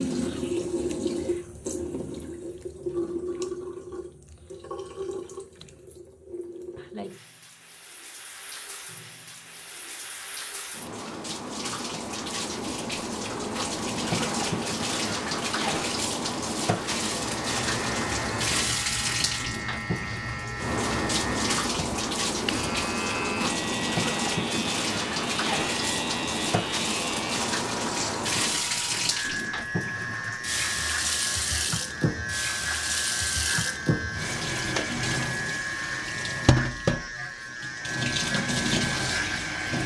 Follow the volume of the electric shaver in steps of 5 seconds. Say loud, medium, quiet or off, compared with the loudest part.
off, off, off, loud, loud, loud, loud, loud.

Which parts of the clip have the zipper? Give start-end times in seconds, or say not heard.
not heard.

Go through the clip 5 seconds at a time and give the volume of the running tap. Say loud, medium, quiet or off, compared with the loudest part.
loud, quiet, loud, loud, loud, loud, loud, loud.